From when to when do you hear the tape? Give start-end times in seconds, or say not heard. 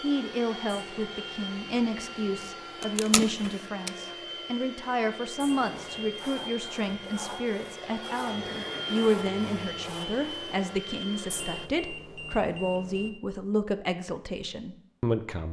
2.8-3.9.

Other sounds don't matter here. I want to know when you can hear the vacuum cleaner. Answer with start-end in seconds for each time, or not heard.
0.0-11.7.